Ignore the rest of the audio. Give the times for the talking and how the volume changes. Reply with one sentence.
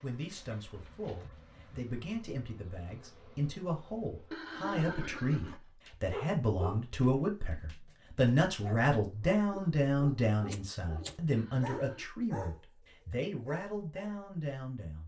The talking can be heard from 0.0 to 15.0 s, getting louder then quieter.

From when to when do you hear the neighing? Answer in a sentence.
The neighing can be heard from 4.3 to 5.6 s and from 11.3 to 12.1 s.